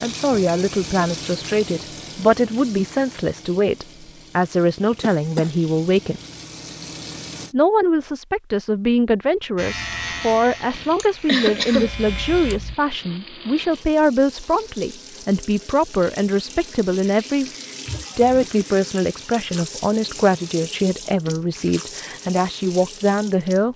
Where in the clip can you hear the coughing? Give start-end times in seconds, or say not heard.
5.0-5.5, 10.9-11.9, 17.9-18.5.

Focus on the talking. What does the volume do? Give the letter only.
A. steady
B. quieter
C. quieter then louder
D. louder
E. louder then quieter
A.